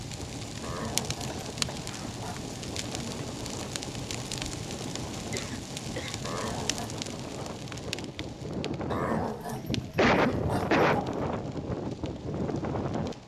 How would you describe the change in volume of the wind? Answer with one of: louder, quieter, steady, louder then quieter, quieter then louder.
louder.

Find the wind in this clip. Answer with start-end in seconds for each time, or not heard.
0.0-13.2.